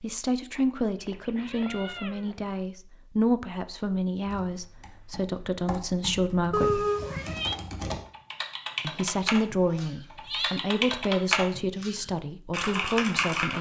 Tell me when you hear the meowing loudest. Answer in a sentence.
The loudest moment of the meowing is at 7 seconds.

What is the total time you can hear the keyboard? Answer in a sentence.
You can hear the keyboard for 9 seconds altogether.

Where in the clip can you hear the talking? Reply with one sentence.
The talking can be heard from 0.0 to 6.8 s and from 8.8 to 13.5 s.